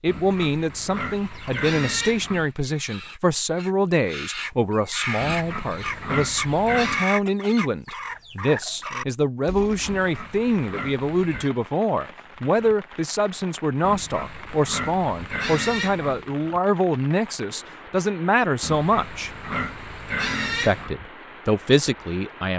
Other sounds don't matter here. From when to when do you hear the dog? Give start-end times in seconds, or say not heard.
not heard.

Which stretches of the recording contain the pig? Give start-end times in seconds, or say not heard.
0.1-2.5, 5.2-7.0, 9.8-11.5, 13.8-16.3, 18.6-20.9.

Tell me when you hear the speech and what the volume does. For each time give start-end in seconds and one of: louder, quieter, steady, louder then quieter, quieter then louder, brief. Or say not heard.
0.0-19.3 steady
20.5-22.5 brief.